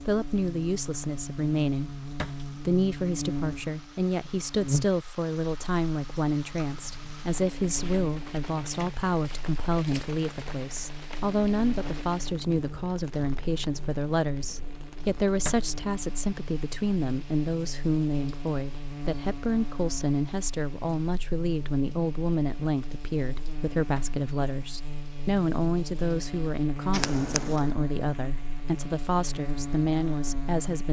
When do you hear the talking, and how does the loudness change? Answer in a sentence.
The talking can be heard from 0.1 to 30.8 s, at a steady volume.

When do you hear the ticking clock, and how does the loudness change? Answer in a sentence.
The ticking clock can't be heard in this clip.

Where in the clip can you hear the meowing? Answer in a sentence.
You can hear the meowing from 26.9 to 27.8 s.